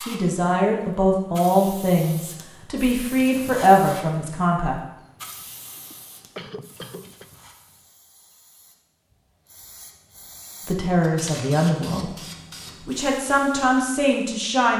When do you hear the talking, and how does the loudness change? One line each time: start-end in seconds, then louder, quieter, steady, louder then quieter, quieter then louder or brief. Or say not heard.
0.1-4.8 quieter then louder
10.7-12.1 brief
12.8-14.7 brief.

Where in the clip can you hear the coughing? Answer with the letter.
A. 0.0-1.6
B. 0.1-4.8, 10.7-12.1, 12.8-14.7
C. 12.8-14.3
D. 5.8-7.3
D.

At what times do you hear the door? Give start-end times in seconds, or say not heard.
not heard.